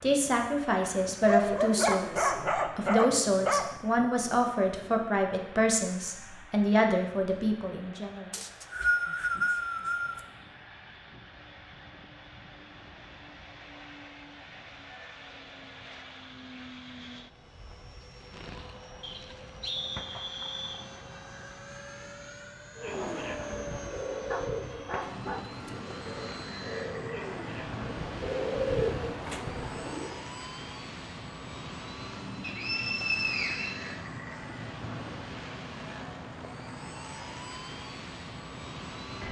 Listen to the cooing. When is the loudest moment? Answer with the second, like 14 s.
29 s.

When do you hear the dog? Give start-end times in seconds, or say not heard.
1.2-3.7, 24.3-25.7.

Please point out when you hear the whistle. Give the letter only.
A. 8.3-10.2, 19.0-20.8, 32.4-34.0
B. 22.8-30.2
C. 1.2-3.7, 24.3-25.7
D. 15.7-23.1
A.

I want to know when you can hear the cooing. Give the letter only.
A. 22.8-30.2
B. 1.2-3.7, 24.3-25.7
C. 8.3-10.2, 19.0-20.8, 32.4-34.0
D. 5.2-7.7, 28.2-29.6
A.